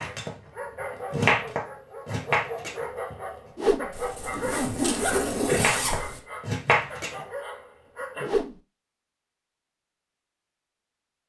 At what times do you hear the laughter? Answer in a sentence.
You can't hear the laughter here.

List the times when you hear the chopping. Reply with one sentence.
You can hear the chopping from 0.0 to 3.2 s and from 5.3 to 7.2 s.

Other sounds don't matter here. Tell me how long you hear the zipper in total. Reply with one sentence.
The zipper can be heard for 2 seconds in total.